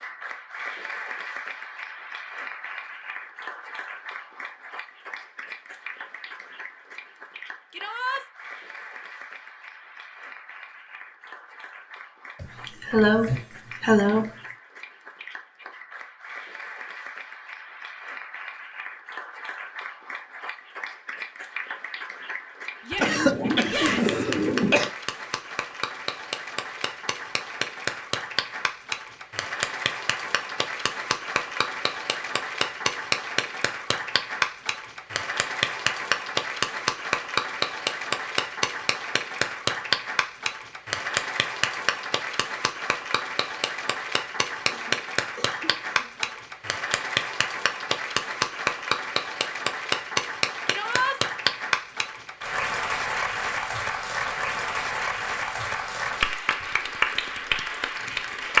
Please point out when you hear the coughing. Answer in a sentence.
The coughing can be heard from 12.4 to 14.3 s, from 22.9 to 24.9 s and from 44.6 to 46.3 s.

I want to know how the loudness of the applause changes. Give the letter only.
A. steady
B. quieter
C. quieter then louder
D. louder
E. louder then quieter
D.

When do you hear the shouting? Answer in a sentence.
You can hear the shouting from 7.7 to 8.2 s, from 22.9 to 24.2 s and from 50.6 to 51.1 s.